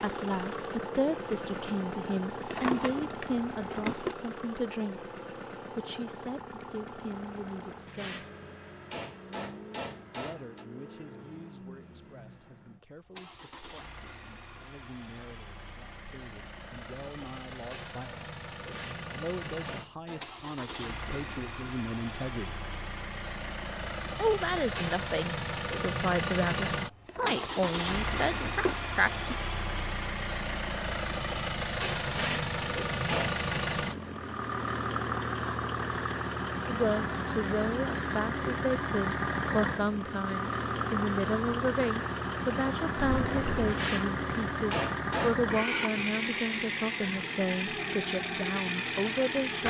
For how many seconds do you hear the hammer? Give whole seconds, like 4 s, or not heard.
8 s.